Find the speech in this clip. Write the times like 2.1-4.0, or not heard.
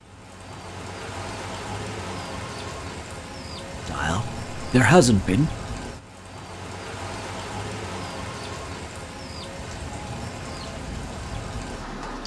3.9-5.5.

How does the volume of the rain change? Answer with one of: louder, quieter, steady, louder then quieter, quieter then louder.
steady.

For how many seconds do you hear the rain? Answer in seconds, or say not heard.
12 s.